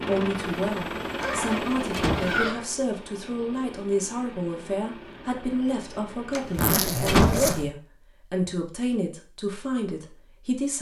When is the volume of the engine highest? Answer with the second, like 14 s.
2 s.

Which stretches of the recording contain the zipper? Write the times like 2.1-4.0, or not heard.
1.1-2.7, 6.5-7.7.